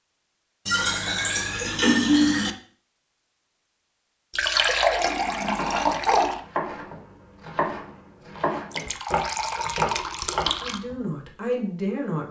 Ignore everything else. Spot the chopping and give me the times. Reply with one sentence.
The chopping can be heard from 5.5 to 10.9 s.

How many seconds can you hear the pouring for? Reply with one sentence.
The pouring can be heard for 6 seconds in total.